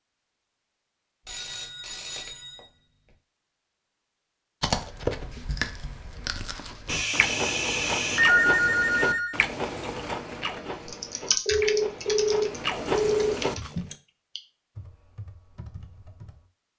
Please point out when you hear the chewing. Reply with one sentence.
You can hear the chewing from 4.6 to 13.9 s.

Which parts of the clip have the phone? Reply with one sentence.
You can hear the phone from 1.2 to 2.6 s, from 6.8 to 9.3 s and from 11.4 to 13.4 s.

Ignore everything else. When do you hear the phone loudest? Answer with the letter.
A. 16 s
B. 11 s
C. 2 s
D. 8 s
D.